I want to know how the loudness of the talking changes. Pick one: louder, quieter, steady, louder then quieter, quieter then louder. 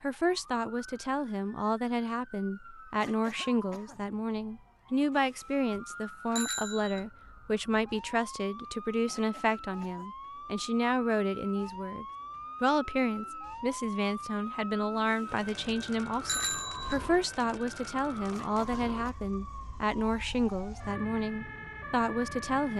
steady.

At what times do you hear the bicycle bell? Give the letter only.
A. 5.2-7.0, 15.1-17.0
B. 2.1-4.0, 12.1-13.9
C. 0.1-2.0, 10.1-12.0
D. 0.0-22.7
A.